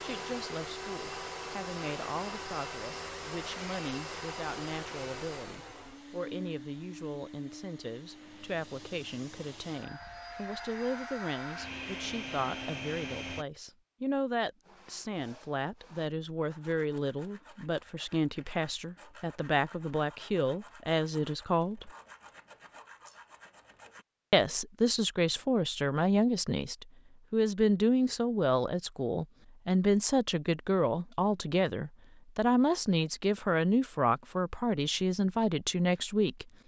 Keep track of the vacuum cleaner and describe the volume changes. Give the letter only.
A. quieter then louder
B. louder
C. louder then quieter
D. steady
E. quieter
A.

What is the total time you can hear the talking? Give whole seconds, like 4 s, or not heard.
34 s.